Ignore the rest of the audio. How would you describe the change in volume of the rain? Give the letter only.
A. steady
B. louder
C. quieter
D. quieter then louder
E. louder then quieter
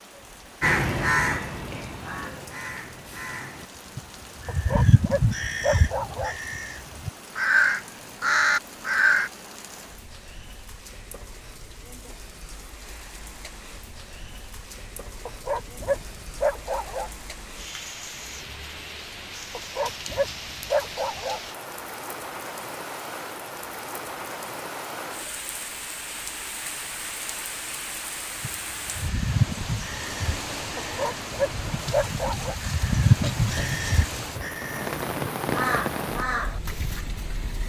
B.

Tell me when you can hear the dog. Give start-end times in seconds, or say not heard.
4.5-6.3, 15.2-17.1, 19.6-21.4, 30.8-32.5.